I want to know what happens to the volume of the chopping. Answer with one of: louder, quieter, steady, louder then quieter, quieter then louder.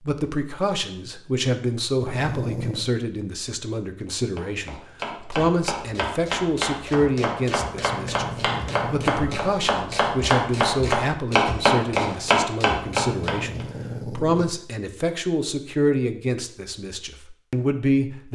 louder.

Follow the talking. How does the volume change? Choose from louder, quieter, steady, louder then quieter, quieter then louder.
steady.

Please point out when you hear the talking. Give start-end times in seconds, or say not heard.
0.1-18.3.